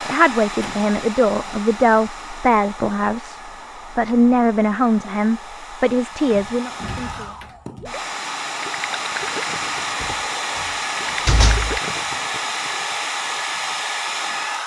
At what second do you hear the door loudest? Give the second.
11 s.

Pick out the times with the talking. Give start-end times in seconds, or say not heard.
0.0-8.0.